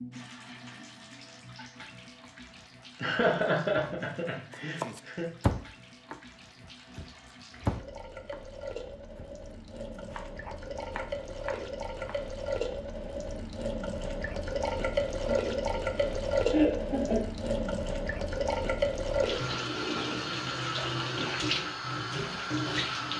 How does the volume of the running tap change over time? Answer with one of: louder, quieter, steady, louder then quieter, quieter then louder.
louder.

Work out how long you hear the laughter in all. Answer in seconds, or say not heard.
4 s.